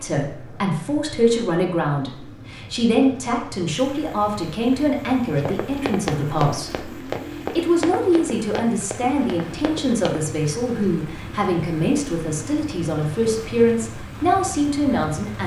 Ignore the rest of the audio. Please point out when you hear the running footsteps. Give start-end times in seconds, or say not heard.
5.3-10.2.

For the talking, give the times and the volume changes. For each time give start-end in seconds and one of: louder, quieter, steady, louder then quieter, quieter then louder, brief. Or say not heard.
0.0-15.4 steady.